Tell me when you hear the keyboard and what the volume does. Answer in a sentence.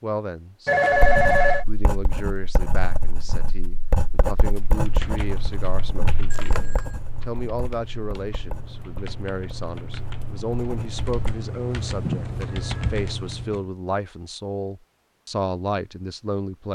You can hear the keyboard from 4.6 to 13.7 s, getting quieter then louder.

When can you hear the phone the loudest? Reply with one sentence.
The loudest moment of the phone is at 1 second.